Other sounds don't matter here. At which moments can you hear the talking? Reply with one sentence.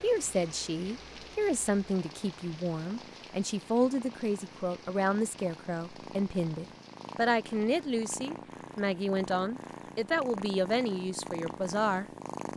You can hear the talking from 0.0 to 12.1 s.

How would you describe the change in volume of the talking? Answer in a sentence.
The loudness of the talking stays about the same.